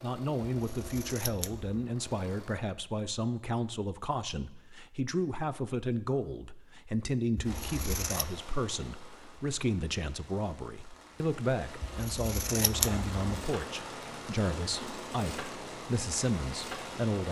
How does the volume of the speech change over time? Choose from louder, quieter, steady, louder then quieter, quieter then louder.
steady.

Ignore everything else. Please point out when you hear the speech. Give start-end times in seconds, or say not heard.
0.0-17.2.